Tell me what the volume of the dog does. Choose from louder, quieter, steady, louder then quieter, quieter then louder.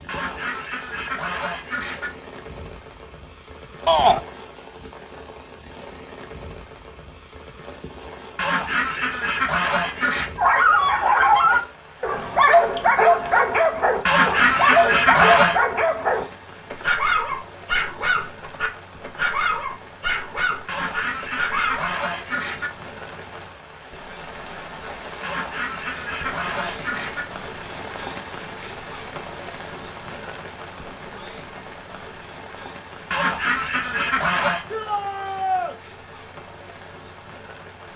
quieter.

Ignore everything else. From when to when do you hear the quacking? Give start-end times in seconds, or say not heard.
0.1-2.1, 8.3-10.3, 14.1-15.6, 20.6-22.7, 25.2-27.2, 33.1-34.6.